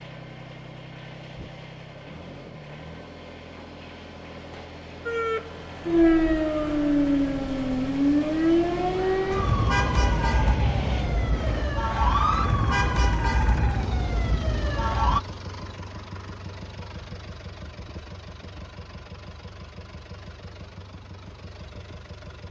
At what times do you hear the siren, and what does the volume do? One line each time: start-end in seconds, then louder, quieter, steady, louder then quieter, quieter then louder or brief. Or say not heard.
5.0-15.2 quieter.